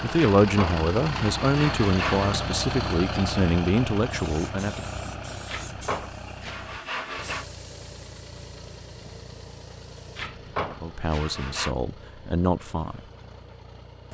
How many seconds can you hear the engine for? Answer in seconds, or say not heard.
14 s.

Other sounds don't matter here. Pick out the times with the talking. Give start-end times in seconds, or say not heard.
0.0-4.9, 10.6-13.0.